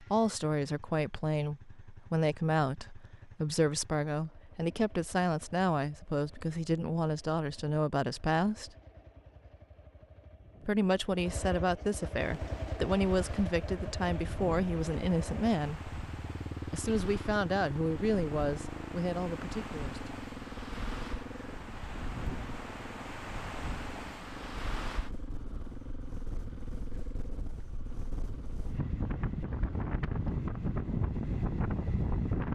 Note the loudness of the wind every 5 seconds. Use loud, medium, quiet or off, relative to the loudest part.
off, off, quiet, quiet, medium, medium, loud.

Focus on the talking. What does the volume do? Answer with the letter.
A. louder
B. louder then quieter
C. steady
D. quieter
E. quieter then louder
C.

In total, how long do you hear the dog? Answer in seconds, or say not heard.
not heard.